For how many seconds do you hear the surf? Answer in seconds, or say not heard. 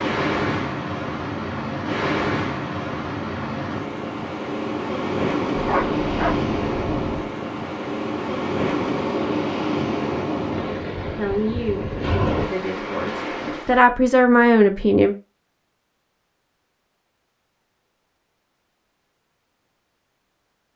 14 s.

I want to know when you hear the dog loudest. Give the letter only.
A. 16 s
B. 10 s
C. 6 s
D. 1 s
C.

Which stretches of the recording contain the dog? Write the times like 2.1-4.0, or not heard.
5.5-7.3.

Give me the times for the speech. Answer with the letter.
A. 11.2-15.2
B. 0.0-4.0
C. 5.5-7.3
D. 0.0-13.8
A.